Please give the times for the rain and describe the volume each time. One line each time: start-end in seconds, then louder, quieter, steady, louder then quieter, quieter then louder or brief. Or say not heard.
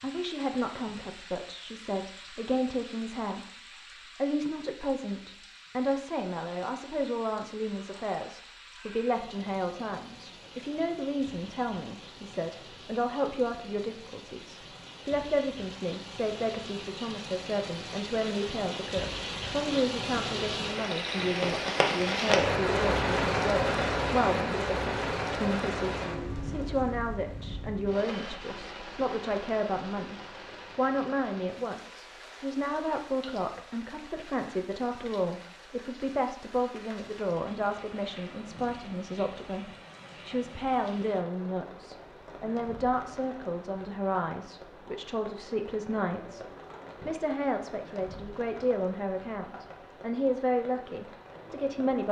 0.0-52.0 louder then quieter.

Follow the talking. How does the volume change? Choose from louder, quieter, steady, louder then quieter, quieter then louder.
steady.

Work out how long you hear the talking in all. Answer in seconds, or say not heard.
52 s.